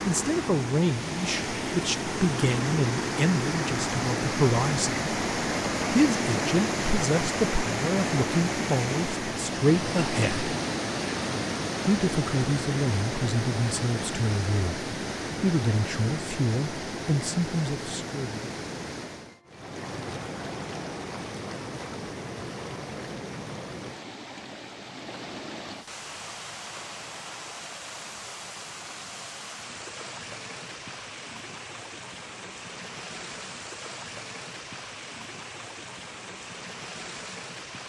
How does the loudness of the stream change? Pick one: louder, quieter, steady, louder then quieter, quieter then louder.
quieter.